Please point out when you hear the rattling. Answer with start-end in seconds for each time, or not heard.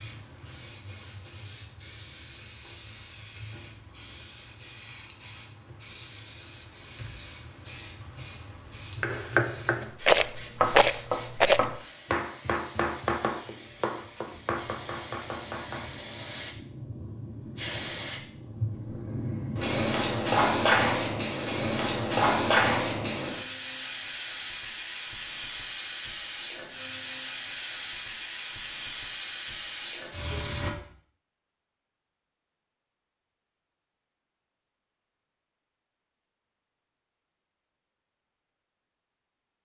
10.0-11.7.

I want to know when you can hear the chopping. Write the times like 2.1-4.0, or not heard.
9.0-15.8.